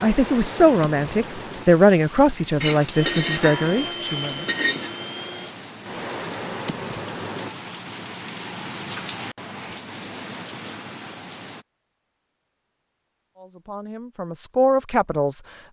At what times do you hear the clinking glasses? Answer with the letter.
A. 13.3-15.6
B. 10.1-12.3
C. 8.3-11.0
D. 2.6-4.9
D.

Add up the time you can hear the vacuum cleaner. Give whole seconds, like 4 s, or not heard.
3 s.